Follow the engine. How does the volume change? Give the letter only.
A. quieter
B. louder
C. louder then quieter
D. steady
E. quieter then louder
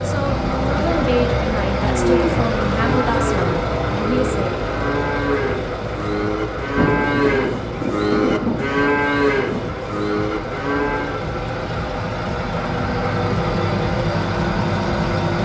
E.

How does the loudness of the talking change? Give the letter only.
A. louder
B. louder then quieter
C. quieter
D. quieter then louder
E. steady
E.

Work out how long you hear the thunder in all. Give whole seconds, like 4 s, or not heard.
3 s.